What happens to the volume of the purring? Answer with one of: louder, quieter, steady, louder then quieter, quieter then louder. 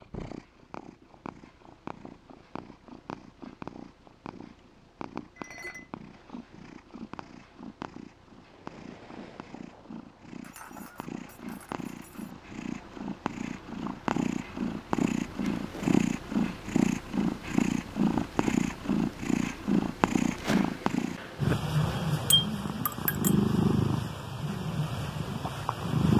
louder.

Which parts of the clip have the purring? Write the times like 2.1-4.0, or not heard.
0.0-26.1.